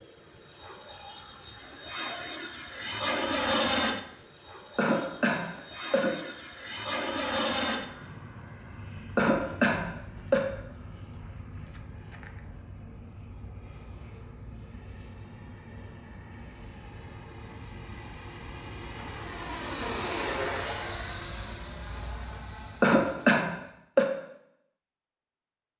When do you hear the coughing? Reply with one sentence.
The coughing can be heard from 4.8 to 6.2 s, from 9.2 to 10.4 s and from 22.8 to 24.1 s.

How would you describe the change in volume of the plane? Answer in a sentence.
The volume of the plane goes down, then up.